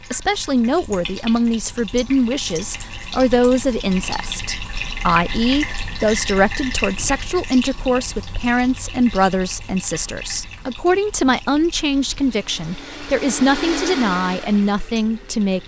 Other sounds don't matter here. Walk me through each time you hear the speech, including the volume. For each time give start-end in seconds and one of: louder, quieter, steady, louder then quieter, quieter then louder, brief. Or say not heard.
0.0-15.6 steady.